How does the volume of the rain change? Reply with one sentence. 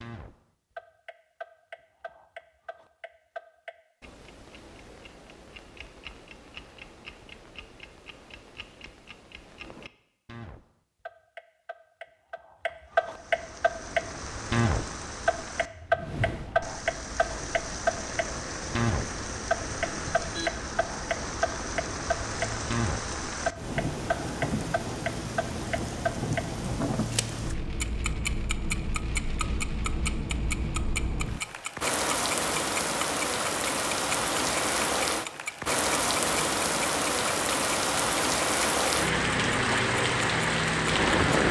The volume of the rain goes up.